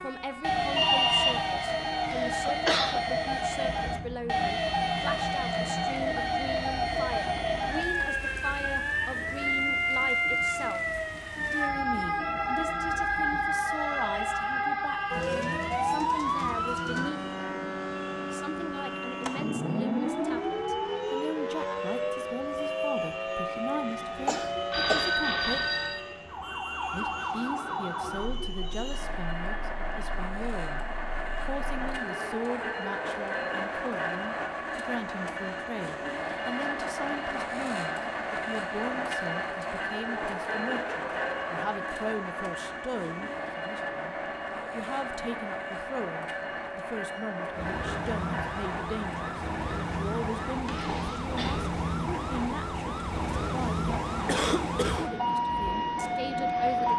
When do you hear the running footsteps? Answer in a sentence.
You can't hear the running footsteps here.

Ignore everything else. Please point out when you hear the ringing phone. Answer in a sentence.
The ringing phone can be heard from 0.8 to 1.4 s, from 24.7 to 26.0 s and from 50.6 to 51.6 s.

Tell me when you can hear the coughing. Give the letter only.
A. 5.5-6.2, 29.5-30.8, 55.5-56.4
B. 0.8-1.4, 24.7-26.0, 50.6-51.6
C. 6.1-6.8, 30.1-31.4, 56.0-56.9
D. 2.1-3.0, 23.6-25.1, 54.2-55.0
D.